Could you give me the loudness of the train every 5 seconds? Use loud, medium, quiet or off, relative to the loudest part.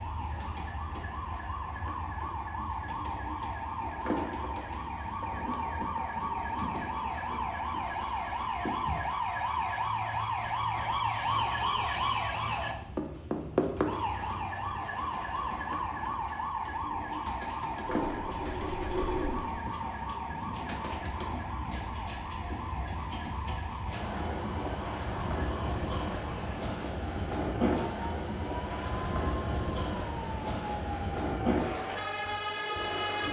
quiet, quiet, quiet, quiet, medium, loud, loud.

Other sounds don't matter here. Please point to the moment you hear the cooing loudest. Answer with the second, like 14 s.
19 s.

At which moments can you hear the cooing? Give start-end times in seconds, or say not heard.
17.9-19.4.